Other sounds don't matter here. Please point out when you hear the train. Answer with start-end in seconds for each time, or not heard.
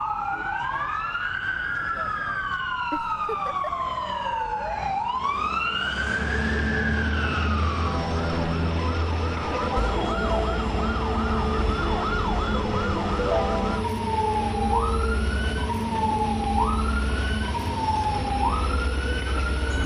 6.0-19.8.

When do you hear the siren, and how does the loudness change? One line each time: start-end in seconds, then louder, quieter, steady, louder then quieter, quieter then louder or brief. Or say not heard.
0.0-19.8 steady.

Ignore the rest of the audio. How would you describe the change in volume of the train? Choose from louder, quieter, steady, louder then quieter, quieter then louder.
steady.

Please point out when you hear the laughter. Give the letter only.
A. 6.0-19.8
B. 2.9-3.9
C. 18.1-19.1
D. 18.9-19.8
B.